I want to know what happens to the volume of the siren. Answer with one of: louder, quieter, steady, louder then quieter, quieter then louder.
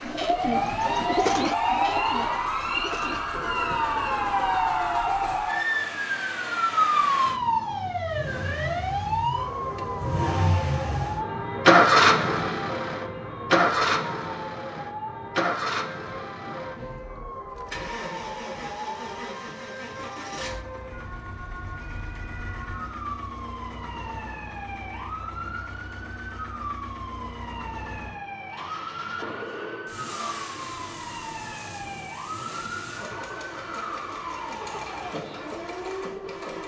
quieter.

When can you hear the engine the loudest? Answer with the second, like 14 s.
12 s.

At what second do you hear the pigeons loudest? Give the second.
1 s.